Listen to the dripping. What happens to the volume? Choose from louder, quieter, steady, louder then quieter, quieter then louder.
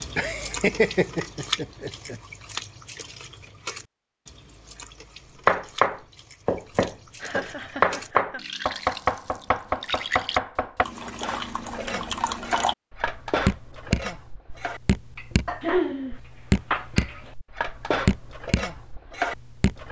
quieter then louder.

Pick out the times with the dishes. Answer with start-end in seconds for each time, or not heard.
11.2-19.8.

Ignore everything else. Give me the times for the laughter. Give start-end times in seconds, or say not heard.
0.1-2.1, 7.2-8.4, 15.6-16.2.